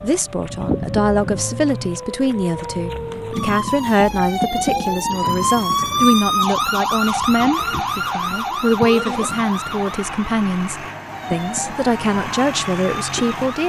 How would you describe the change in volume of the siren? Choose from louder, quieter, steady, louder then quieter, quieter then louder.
louder then quieter.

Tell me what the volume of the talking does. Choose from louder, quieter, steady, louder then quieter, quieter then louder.
steady.